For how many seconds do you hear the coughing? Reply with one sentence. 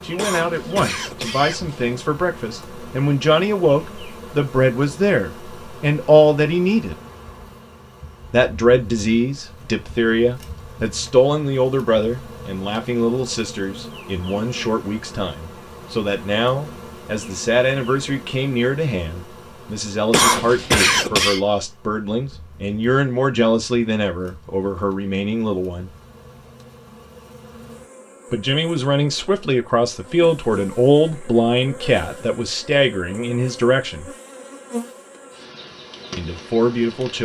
You can hear the coughing for 3 seconds altogether.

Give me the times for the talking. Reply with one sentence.
The talking can be heard from 0.0 to 7.0 s, from 8.3 to 25.9 s, from 28.3 to 34.0 s and from 36.1 to 37.1 s.